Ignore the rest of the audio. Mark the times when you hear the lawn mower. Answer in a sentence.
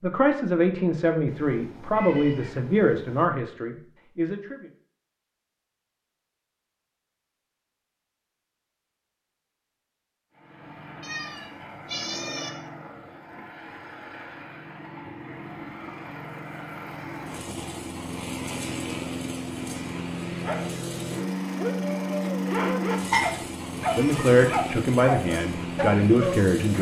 The lawn mower can be heard from 10.3 to 26.7 s.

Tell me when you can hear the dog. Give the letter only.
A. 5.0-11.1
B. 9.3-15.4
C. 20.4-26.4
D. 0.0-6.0
C.